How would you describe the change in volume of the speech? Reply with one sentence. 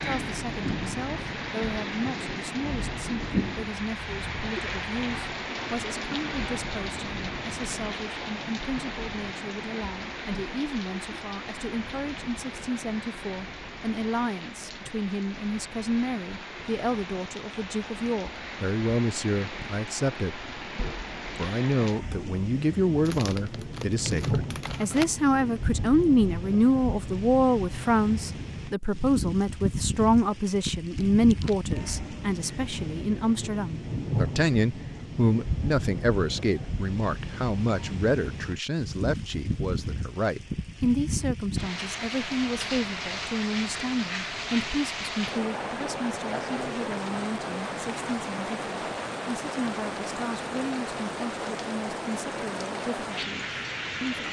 The volume of the speech goes up, then down.